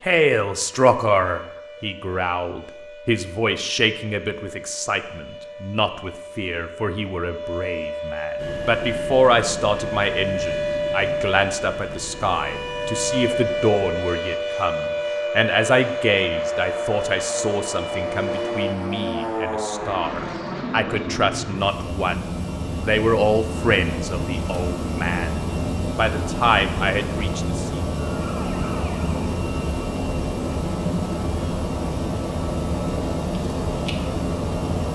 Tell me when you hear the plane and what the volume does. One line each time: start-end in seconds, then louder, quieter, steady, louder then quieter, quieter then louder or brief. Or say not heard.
8.3-34.9 louder.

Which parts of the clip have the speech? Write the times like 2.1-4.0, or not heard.
0.0-27.8.